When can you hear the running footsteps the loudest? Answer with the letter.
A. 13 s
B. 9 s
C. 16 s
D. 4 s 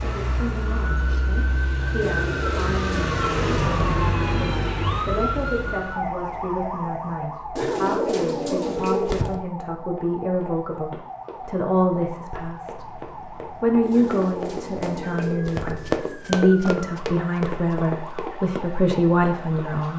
C.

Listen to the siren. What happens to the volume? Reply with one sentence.
The loudness of the siren goes down.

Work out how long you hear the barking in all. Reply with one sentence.
The barking can't be heard in this clip.